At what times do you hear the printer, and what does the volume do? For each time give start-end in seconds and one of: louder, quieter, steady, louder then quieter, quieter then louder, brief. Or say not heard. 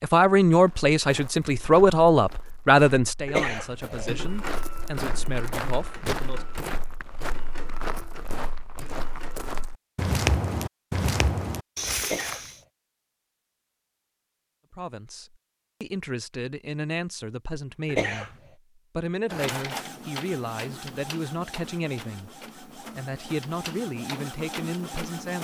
4.0-9.6 quieter
19.2-25.3 quieter then louder.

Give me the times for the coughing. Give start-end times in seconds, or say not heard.
3.2-4.1, 12.0-12.5, 17.9-18.4.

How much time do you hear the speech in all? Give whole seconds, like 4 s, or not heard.
17 s.